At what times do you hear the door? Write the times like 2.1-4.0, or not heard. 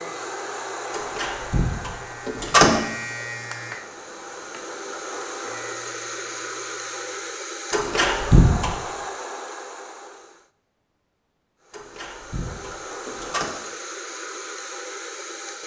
0.9-2.8, 7.7-8.8, 11.7-13.5.